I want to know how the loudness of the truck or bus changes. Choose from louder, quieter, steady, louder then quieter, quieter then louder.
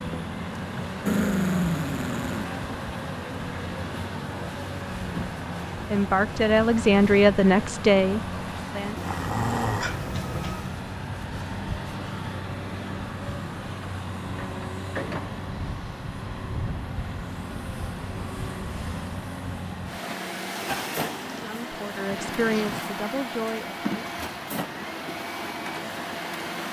steady.